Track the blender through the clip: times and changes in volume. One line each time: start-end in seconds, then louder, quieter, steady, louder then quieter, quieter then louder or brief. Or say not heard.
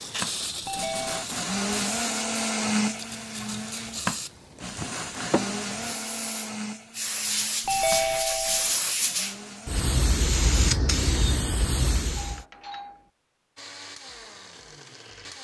0.0-9.9 quieter
13.6-15.4 brief.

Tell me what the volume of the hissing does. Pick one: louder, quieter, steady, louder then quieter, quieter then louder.
louder.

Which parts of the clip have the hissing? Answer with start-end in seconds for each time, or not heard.
0.0-12.4.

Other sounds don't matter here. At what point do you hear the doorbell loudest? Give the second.
8 s.